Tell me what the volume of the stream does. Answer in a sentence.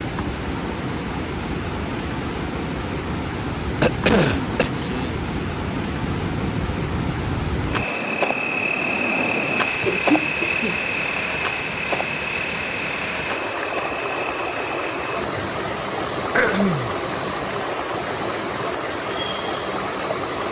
The loudness of the stream stays about the same.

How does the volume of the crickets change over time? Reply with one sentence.
The loudness of the crickets goes up, then down.